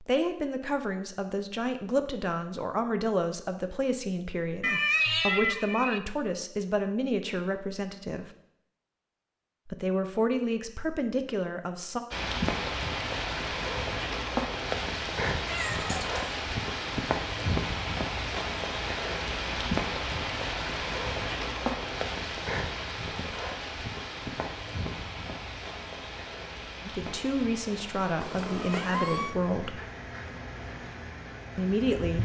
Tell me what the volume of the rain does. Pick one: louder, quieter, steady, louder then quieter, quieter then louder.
quieter.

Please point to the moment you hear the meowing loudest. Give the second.
5 s.